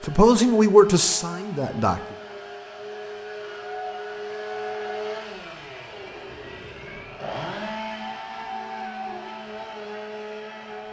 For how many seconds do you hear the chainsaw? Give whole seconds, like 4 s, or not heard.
11 s.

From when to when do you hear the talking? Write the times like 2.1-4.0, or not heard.
0.0-2.0.